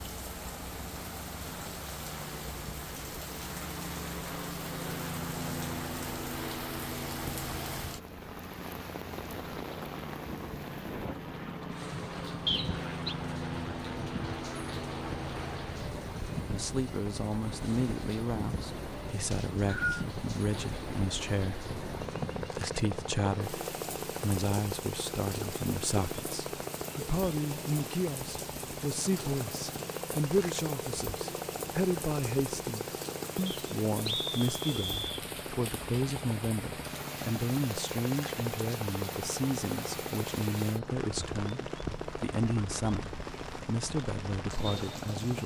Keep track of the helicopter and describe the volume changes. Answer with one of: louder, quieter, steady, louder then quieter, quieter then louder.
steady.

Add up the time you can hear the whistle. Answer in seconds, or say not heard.
3 s.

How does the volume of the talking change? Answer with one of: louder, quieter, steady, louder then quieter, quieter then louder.
steady.